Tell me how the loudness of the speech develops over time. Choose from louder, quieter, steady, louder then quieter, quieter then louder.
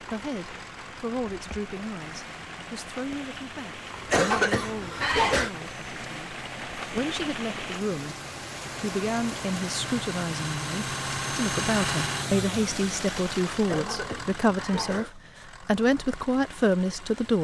louder.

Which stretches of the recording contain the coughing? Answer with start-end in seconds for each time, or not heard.
4.1-5.5, 13.7-15.1.